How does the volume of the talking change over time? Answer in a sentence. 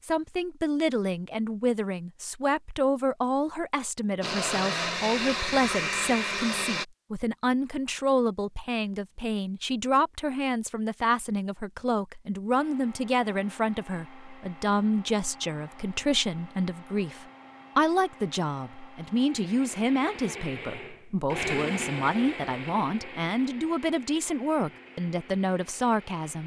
The loudness of the talking stays about the same.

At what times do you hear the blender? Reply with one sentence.
You can hear the blender from 4.2 to 6.8 s and from 12.5 to 26.4 s.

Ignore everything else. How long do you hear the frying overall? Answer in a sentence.
You can't hear the frying here.